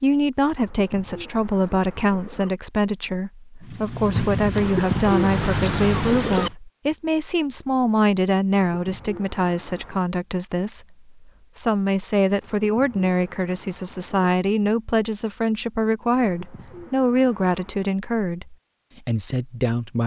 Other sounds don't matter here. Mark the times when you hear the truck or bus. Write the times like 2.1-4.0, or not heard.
3.6-6.5.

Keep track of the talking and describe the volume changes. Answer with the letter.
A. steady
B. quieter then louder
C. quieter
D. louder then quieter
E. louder
A.